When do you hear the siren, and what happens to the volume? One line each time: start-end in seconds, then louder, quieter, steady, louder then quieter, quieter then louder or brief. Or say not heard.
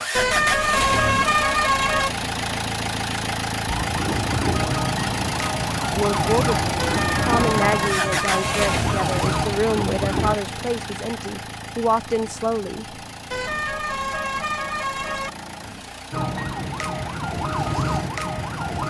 3.6-10.3 steady
16.1-18.8 brief.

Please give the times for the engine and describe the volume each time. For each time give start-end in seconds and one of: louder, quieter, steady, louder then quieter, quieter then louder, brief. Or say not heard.
0.0-18.8 quieter.